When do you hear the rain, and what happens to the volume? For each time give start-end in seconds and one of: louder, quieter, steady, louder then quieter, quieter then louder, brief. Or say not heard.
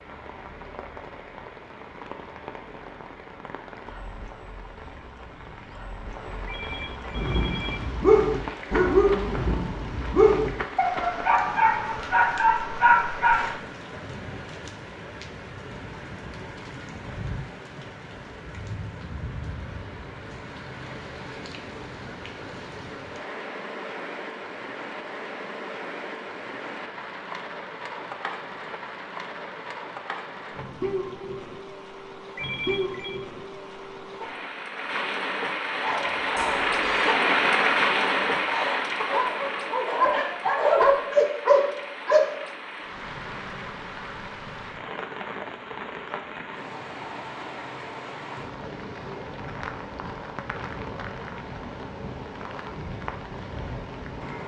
0.0-54.4 louder then quieter.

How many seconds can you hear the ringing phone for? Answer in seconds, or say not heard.
3 s.